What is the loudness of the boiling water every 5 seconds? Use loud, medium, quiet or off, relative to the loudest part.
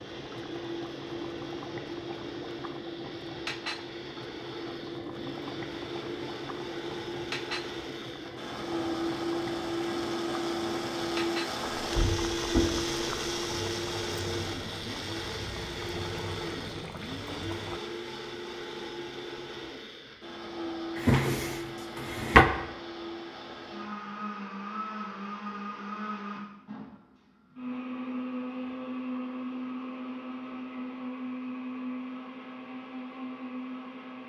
loud, loud, loud, loud, off, off, off.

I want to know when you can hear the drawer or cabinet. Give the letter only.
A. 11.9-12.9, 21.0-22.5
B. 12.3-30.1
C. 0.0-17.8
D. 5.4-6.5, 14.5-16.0
A.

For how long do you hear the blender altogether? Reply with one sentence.
You can hear the blender for 34 seconds altogether.